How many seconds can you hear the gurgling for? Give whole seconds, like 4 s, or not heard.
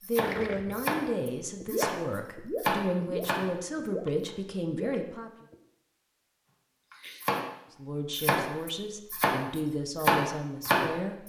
5 s.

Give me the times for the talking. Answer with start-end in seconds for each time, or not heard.
0.1-5.5, 7.7-11.2.